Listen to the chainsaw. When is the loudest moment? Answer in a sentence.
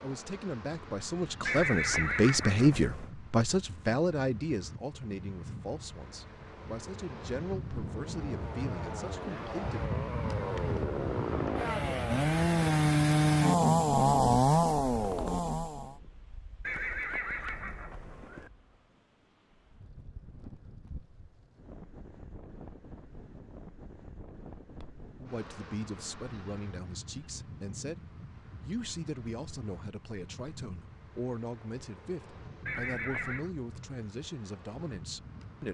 The loudest moment of the chainsaw is at 14 seconds.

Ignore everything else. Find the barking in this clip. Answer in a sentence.
The barking can't be heard in this clip.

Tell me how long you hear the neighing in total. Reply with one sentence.
The neighing can be heard for 4 seconds in total.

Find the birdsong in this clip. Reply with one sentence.
You can't hear the birdsong here.